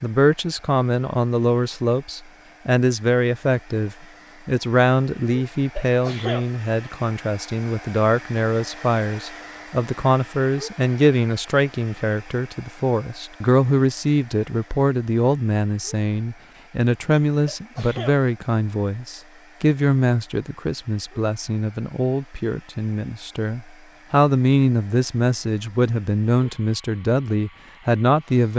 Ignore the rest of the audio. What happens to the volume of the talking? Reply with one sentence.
The volume of the talking stays about the same.